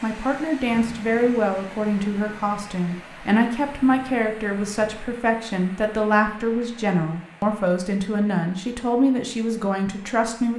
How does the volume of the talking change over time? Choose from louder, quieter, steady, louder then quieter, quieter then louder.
steady.